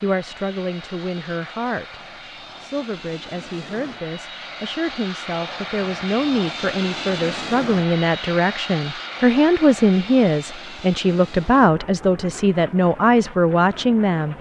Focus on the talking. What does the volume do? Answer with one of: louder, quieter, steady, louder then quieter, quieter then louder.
louder.